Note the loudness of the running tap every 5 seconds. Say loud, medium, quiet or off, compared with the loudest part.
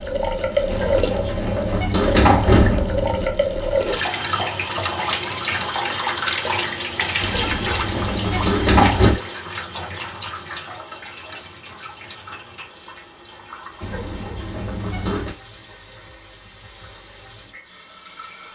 loud, loud, quiet, quiet.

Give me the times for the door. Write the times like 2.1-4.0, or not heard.
0.7-3.2, 7.2-9.2, 13.8-15.3.